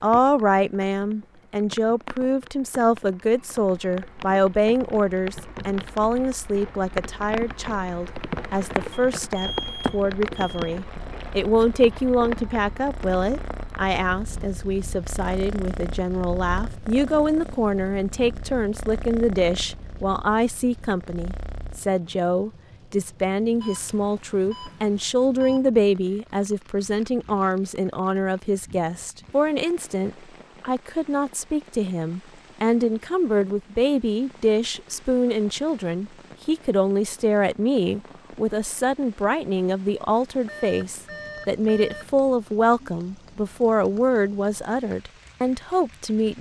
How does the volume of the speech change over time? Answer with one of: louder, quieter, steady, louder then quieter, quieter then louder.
steady.